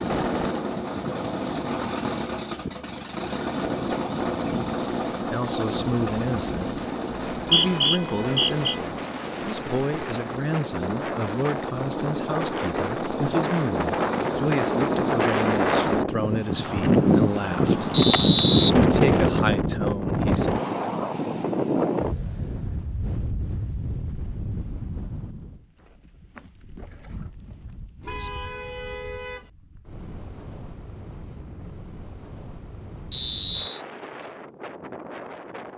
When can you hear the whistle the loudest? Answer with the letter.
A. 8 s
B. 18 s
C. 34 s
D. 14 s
B.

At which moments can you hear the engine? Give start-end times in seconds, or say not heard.
0.0-16.1.